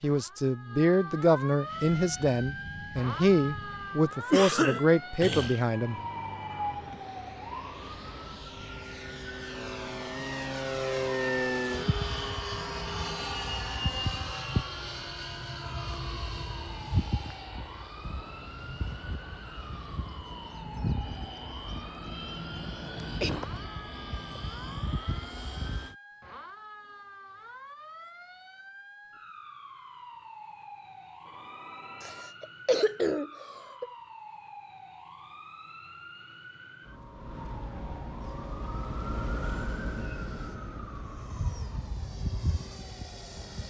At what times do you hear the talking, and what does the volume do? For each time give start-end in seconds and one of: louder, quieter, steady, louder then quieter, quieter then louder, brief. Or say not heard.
0.0-6.0 steady.